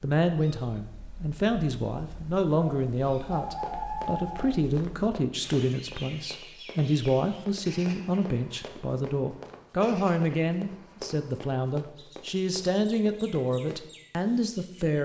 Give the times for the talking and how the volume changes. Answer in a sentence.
The talking can be heard from 0.0 to 14.9 s, at a steady volume.